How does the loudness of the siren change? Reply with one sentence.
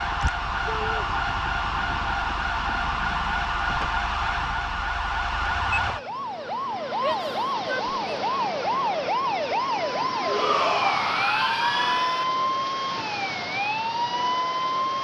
The loudness of the siren stays about the same.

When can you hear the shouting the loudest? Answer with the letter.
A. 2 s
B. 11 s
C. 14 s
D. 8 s
B.